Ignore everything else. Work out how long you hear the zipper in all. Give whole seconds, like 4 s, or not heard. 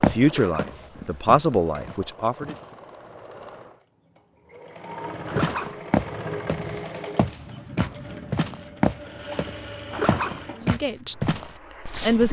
3 s.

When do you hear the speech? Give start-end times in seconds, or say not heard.
0.0-2.5, 10.6-12.2.